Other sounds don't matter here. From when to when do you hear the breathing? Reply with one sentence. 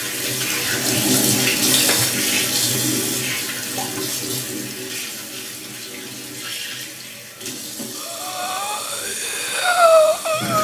You can hear the breathing from 7.9 to 10.5 s.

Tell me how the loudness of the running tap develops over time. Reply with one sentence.
The loudness of the running tap goes down.